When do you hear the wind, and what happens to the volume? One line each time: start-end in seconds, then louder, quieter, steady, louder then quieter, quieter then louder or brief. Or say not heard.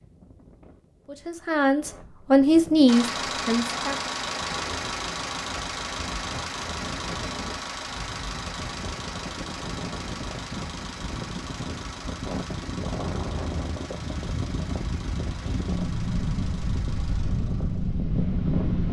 0.0-18.8 louder.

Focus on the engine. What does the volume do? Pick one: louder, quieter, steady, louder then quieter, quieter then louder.
quieter.